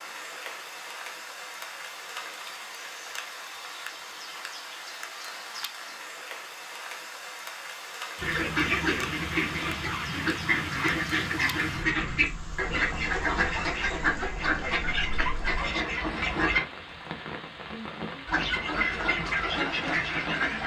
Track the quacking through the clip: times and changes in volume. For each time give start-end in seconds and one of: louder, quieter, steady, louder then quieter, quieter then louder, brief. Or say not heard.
8.2-16.6 steady
18.2-20.6 brief.